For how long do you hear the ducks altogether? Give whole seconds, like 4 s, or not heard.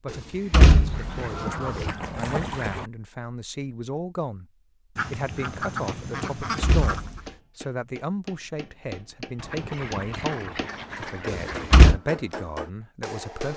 7 s.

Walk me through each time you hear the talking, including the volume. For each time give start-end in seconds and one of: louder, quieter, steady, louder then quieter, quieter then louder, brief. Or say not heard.
0.0-13.5 steady.